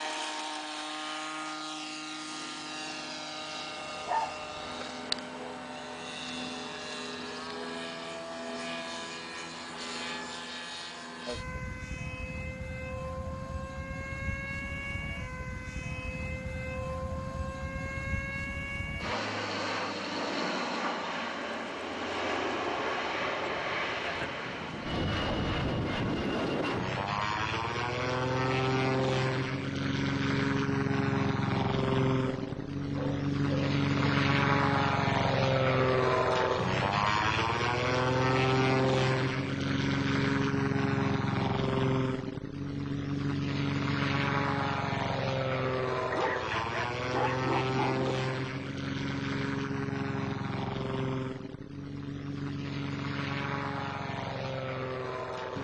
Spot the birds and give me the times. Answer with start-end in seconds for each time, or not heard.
not heard.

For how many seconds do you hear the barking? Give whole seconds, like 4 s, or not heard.
5 s.